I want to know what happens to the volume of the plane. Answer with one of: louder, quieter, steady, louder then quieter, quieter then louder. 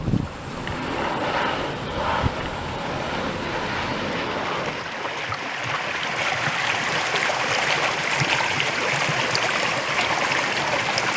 steady.